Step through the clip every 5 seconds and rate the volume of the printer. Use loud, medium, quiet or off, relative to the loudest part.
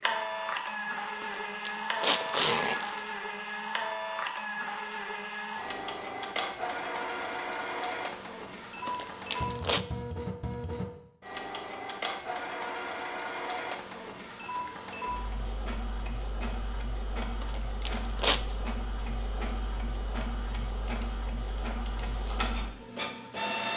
loud, loud, loud, medium, loud.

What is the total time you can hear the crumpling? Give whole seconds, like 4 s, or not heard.
4 s.